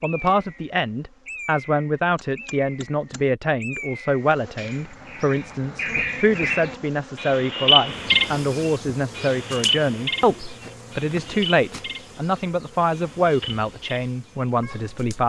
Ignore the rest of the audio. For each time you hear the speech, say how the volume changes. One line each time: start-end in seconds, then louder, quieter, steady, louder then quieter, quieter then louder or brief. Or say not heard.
0.0-15.2 steady.